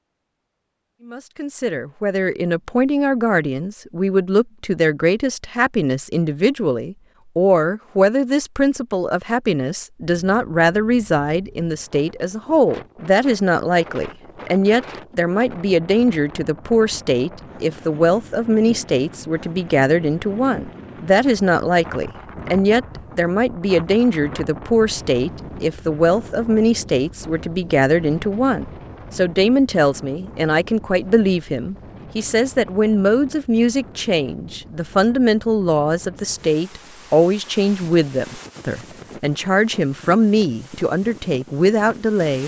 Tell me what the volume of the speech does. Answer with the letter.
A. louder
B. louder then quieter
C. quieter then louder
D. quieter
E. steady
E.